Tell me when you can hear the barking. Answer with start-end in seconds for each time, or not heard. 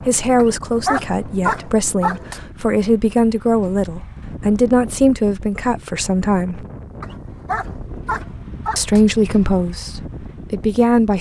0.3-2.4, 7.0-9.0.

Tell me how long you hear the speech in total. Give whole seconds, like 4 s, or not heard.
9 s.